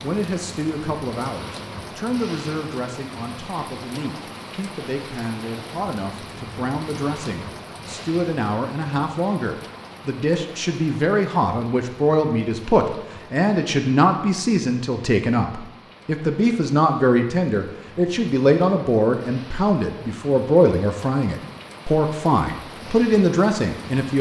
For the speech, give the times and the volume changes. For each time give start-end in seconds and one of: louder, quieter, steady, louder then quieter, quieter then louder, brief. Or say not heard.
0.0-24.1 louder.